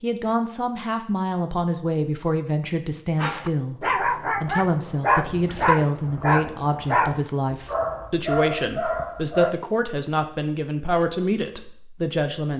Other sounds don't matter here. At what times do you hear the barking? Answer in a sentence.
You can hear the barking from 3.1 to 9.6 s.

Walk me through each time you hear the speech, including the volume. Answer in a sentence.
You can hear the speech from 0.0 to 12.5 s, at a steady volume.